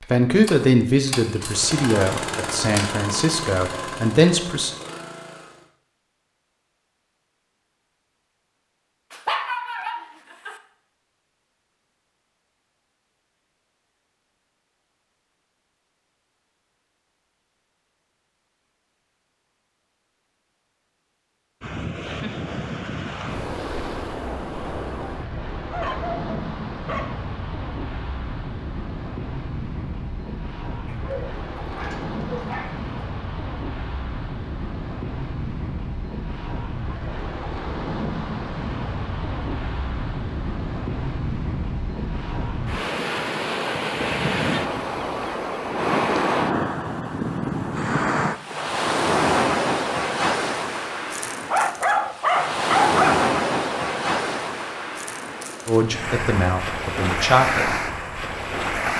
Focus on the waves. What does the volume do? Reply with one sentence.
The loudness of the waves goes up.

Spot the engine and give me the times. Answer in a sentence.
You can hear the engine from 0.0 to 5.7 s.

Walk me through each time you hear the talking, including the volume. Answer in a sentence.
The talking can be heard from 0.0 to 4.8 s, getting quieter then louder; and briefly from 55.6 to 57.8 s.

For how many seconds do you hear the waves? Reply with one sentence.
The waves can be heard for 37 seconds in total.